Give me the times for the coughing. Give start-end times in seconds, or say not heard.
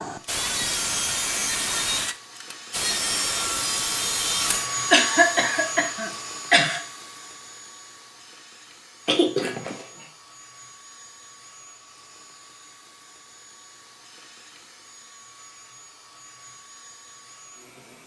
4.9-6.8, 9.1-9.8.